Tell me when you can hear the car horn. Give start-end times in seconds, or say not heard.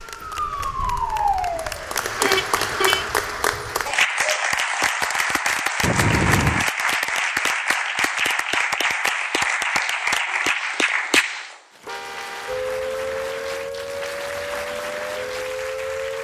2.2-3.0, 5.8-6.7, 11.8-12.7.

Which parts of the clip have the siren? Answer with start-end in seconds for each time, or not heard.
0.0-3.9, 12.4-16.1.